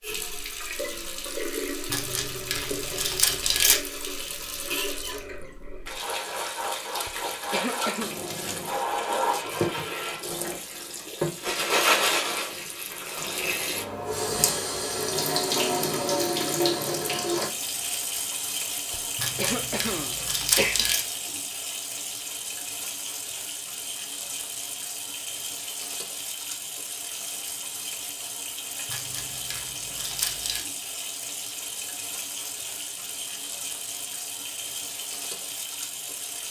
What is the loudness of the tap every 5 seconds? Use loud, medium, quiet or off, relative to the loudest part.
medium, loud, loud, loud, medium, medium, medium, medium.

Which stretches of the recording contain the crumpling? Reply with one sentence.
The crumpling can be heard from 1.9 to 3.8 s, from 19.1 to 21.1 s and from 28.9 to 30.6 s.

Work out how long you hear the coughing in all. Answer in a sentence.
You can hear the coughing for 3 seconds altogether.